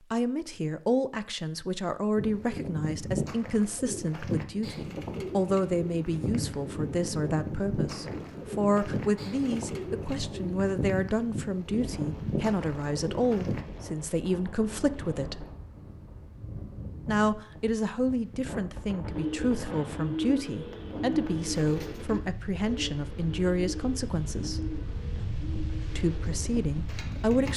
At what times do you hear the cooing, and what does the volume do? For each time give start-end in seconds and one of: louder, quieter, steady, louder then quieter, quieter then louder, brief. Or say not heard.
2.1-13.7 steady
19.1-27.5 quieter.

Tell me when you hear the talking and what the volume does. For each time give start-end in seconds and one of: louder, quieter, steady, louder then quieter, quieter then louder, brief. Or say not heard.
0.1-15.4 steady
17.1-24.8 steady
25.9-27.5 brief.